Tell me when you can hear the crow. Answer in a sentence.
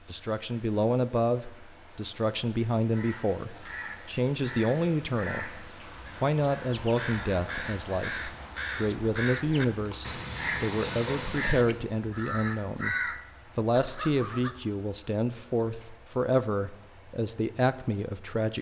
The crow can be heard from 2.9 to 14.6 s.